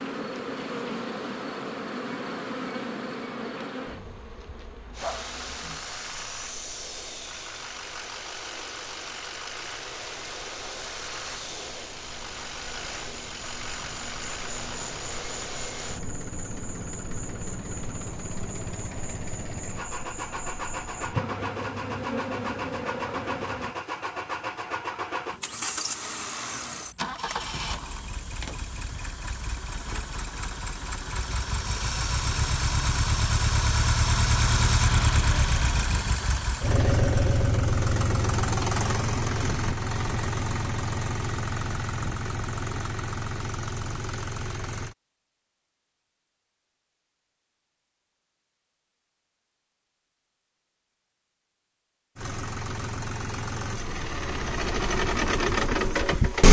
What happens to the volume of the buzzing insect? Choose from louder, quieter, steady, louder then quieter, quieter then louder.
quieter then louder.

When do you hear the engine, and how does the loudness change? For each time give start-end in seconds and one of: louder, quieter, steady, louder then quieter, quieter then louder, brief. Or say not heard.
4.9-45.0 louder
52.1-56.4 louder.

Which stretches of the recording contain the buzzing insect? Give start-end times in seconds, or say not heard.
0.0-23.8.